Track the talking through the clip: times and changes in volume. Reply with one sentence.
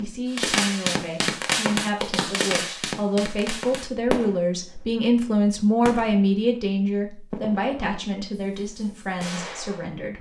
The talking can be heard from 0.0 to 10.1 s, getting louder then quieter.